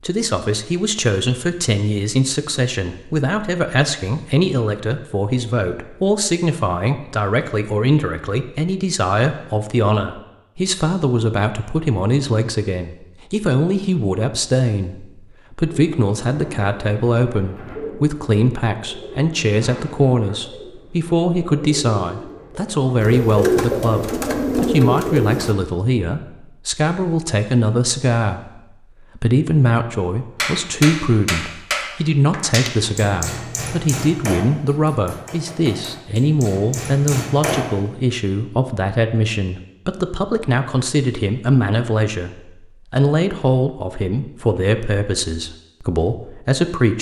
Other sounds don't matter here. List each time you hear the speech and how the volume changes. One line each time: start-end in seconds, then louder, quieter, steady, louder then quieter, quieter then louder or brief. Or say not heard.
0.0-46.9 steady.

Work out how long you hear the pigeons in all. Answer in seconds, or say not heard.
10 s.